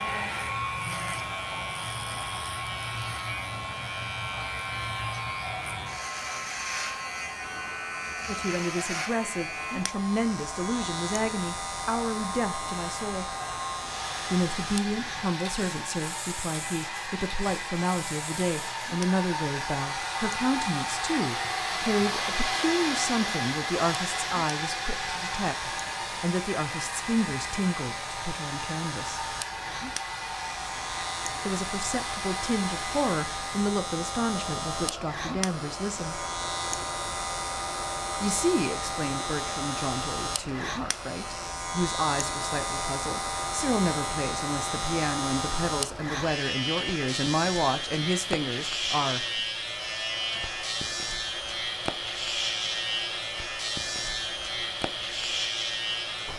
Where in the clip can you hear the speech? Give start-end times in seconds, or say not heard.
8.2-13.3, 14.3-29.2, 31.4-36.2, 38.2-49.4.